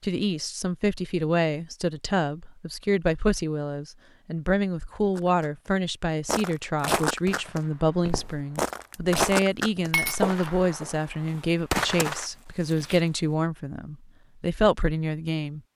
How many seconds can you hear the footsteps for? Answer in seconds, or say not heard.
8 s.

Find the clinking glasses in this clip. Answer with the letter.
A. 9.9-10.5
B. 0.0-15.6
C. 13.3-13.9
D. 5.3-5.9
A.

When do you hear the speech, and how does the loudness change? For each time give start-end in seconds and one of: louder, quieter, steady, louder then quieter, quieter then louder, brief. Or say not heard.
0.0-15.6 steady.